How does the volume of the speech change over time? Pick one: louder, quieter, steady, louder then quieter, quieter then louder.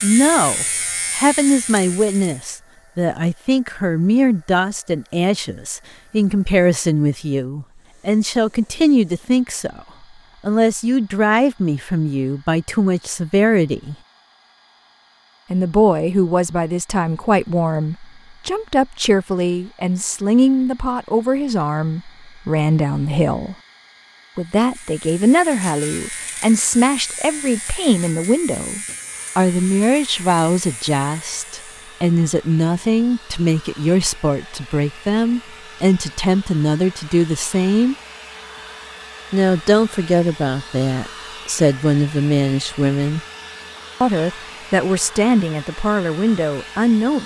steady.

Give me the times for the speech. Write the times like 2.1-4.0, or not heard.
0.0-9.8, 10.4-13.9, 15.5-23.6, 24.4-38.0, 39.3-43.2, 44.0-47.2.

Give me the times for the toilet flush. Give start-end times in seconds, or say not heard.
not heard.